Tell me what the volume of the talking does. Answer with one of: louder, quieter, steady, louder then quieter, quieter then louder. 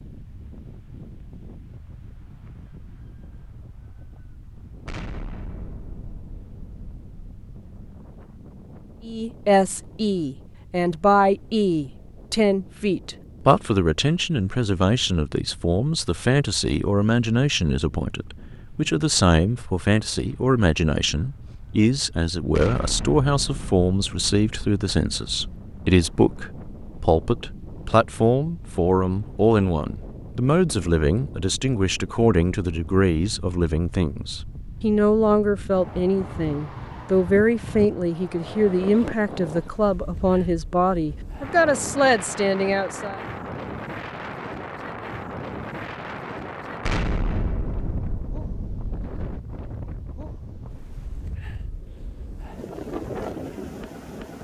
steady.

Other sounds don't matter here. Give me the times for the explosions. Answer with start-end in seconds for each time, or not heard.
4.8-7.9, 22.6-25.6, 46.9-49.2.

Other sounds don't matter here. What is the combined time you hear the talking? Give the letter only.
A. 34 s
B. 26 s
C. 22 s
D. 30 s
A.